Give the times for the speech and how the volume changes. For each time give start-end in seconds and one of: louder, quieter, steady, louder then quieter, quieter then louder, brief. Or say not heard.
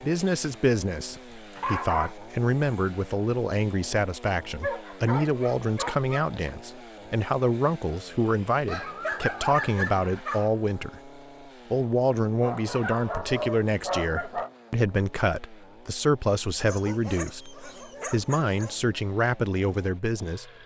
0.0-20.5 steady.